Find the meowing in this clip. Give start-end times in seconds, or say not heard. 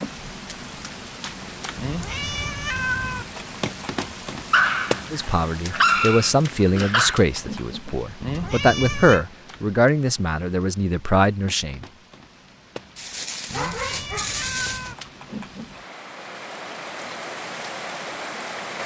1.8-3.2, 8.2-9.2, 13.4-14.9.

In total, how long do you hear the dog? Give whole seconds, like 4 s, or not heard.
5 s.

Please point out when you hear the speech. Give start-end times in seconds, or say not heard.
5.1-11.8.